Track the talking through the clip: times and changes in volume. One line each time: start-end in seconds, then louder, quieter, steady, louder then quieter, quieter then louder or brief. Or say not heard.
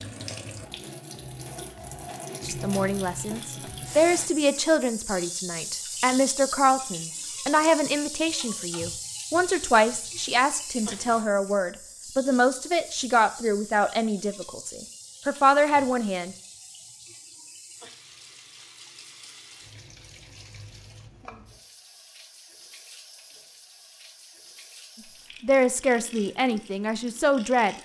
2.4-16.4 steady
25.4-27.8 brief.